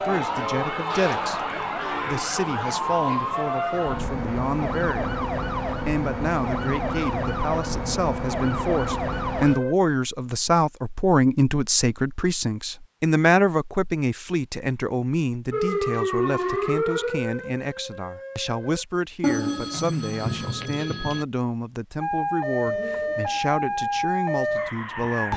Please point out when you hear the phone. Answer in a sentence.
The phone can be heard from 19.2 to 21.2 s.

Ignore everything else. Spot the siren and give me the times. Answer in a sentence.
The siren can be heard from 0.0 to 9.8 s, from 15.5 to 18.9 s and from 22.0 to 25.3 s.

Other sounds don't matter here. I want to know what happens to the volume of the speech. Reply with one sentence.
The volume of the speech goes up, then down.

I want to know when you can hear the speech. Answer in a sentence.
You can hear the speech from 0.1 to 25.3 s.